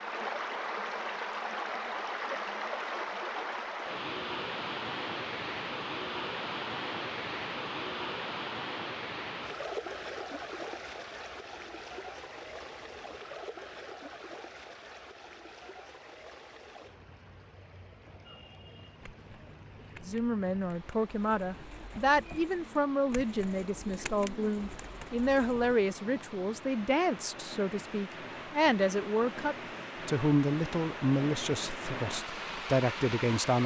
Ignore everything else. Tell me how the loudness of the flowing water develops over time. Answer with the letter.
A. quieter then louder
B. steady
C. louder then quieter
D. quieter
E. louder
A.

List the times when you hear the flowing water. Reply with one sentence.
You can hear the flowing water from 0.0 to 33.6 s.